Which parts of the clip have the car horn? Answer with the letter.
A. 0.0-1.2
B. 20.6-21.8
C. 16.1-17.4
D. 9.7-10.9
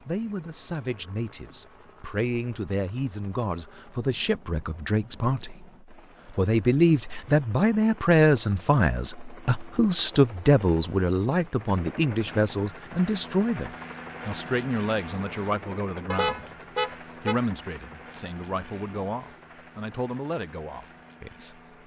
C.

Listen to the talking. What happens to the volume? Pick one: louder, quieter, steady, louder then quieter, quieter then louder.
louder then quieter.